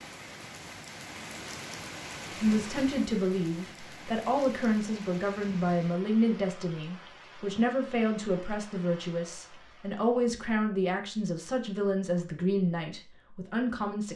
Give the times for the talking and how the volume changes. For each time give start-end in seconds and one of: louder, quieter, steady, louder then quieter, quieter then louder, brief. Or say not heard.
2.4-14.1 steady.